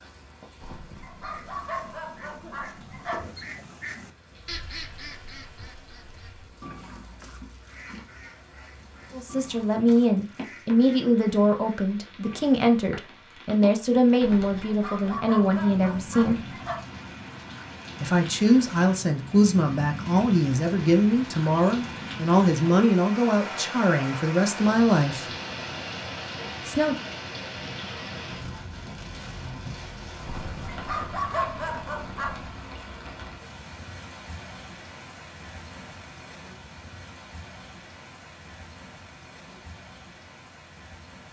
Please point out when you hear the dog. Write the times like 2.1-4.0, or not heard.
0.6-3.2, 14.2-16.8, 30.2-32.5.